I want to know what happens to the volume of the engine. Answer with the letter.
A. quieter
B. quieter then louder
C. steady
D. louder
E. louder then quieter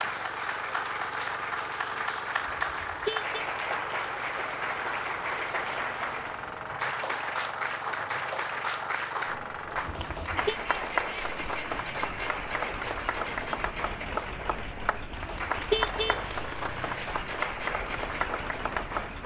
C.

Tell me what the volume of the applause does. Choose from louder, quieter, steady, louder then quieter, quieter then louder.
steady.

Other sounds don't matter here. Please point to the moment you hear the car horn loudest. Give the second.
16 s.